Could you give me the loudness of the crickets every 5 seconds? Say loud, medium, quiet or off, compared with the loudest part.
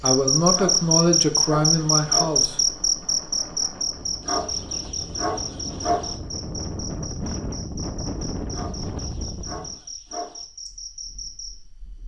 loud, quiet, quiet.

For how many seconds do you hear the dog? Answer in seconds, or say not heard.
6 s.